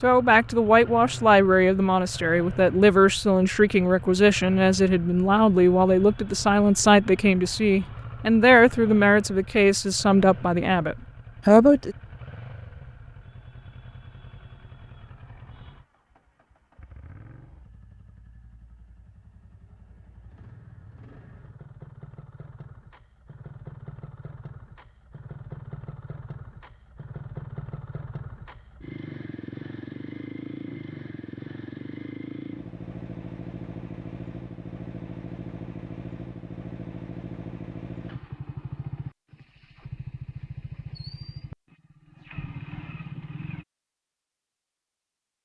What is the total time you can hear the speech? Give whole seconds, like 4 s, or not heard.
12 s.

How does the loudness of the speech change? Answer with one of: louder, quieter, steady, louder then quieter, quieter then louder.
steady.